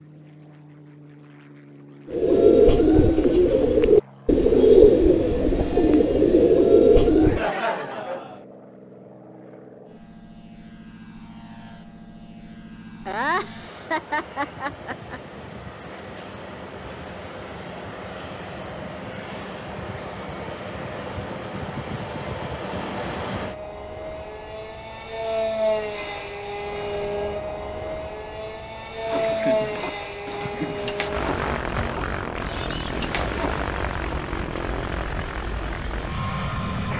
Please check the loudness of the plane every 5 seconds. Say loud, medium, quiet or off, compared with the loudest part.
quiet, quiet, quiet, medium, medium, loud, loud, loud.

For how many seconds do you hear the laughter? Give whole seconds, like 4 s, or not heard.
5 s.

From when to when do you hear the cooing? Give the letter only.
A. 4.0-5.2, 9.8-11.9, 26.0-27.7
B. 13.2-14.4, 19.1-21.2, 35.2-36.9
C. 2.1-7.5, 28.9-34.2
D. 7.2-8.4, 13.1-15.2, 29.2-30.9
C.